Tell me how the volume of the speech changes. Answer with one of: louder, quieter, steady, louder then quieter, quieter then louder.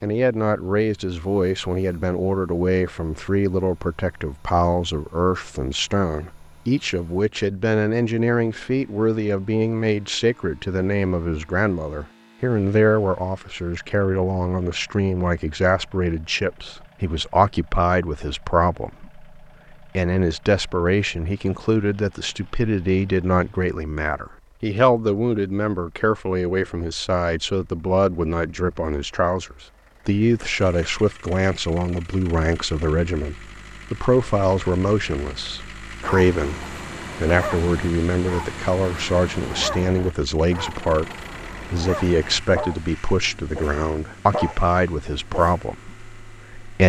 steady.